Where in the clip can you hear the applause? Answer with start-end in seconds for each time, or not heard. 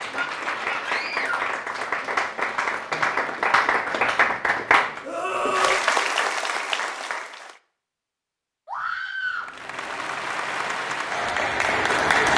0.0-7.5, 9.2-12.3.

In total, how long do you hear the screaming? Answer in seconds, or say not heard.
3 s.